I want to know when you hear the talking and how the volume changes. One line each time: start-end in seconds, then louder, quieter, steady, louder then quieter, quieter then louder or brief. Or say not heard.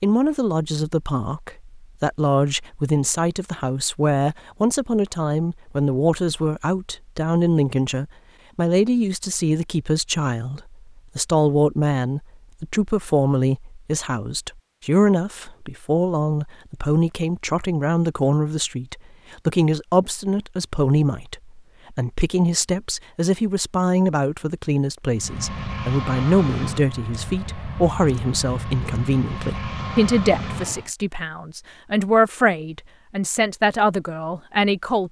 0.0-35.0 steady.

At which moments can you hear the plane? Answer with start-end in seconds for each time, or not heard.
25.1-30.9.